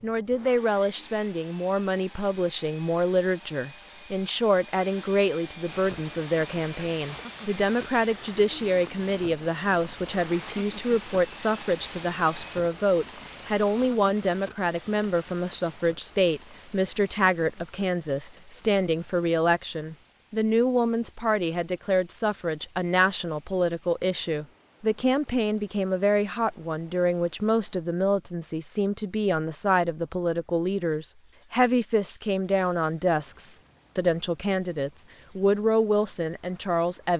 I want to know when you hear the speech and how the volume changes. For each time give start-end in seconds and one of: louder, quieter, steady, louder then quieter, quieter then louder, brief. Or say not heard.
0.0-37.1 steady.